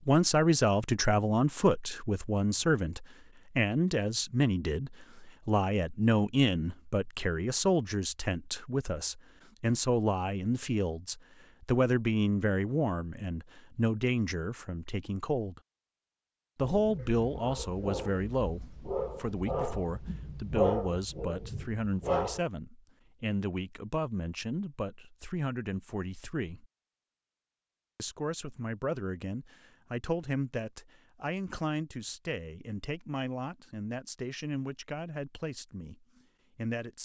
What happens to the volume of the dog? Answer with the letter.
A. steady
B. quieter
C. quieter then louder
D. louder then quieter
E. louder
D.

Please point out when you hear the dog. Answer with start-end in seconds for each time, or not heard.
16.6-22.4.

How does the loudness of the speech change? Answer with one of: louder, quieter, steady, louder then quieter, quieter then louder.
quieter.